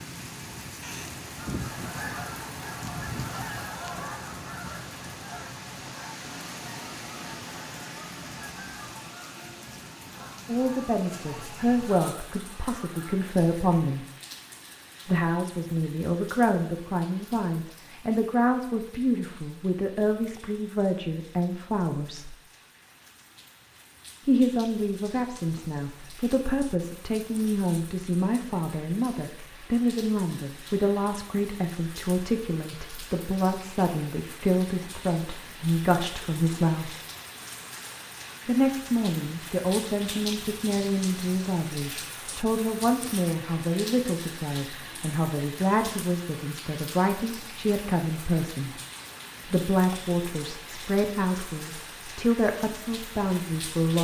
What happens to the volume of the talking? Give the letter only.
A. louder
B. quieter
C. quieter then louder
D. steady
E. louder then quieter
D.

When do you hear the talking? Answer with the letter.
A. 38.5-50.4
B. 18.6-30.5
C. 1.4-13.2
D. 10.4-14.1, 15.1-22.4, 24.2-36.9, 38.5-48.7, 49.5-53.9
D.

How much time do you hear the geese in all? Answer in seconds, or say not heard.
12 s.